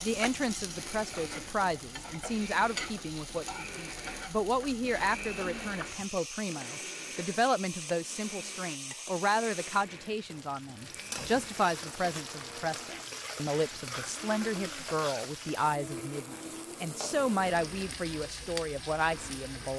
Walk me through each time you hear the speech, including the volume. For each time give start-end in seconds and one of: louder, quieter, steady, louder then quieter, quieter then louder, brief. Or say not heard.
0.0-19.7 steady.